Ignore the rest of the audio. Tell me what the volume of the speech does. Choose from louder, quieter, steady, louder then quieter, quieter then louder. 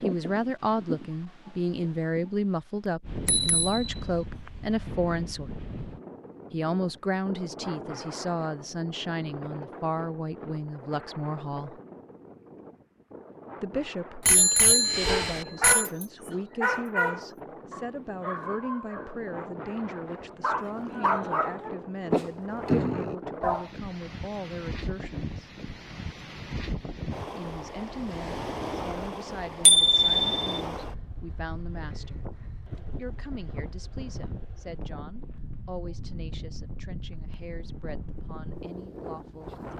quieter.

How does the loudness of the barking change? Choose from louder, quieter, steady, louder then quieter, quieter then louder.
quieter then louder.